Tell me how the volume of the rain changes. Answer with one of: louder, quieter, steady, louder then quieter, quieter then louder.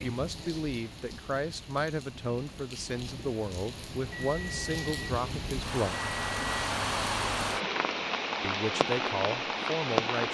louder.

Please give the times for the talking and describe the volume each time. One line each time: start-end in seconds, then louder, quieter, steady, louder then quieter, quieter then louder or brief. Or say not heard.
0.0-6.1 steady
8.4-10.2 brief.